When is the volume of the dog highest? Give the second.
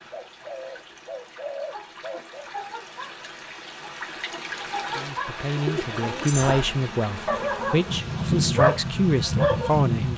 9 s.